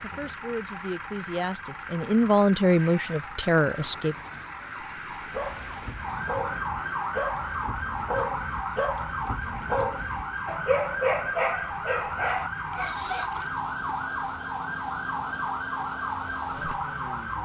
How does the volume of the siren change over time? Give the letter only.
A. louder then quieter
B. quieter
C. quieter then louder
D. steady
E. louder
E.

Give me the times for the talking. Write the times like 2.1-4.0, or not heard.
0.0-4.2.